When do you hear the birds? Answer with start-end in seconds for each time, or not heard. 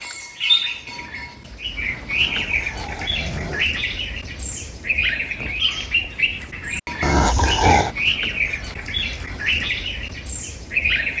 0.0-11.1.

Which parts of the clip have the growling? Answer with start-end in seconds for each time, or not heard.
2.1-3.6, 7.0-8.0.